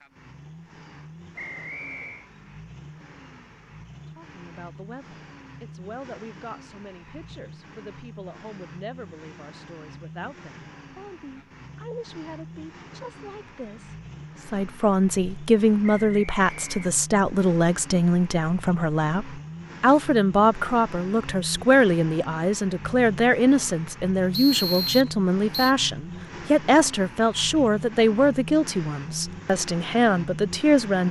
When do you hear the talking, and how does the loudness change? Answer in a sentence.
The talking can be heard from 4.2 to 31.0 s, getting louder.